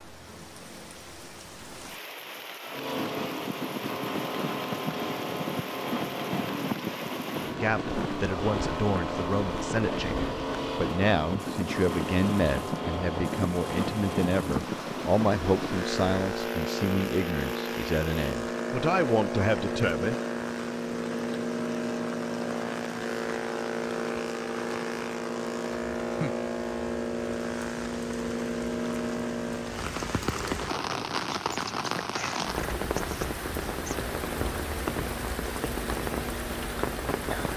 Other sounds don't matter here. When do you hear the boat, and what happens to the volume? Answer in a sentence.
The boat can be heard from 2.6 to 37.2 s, getting quieter.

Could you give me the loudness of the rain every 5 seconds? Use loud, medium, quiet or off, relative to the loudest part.
medium, medium, medium, medium, medium, medium, loud, loud.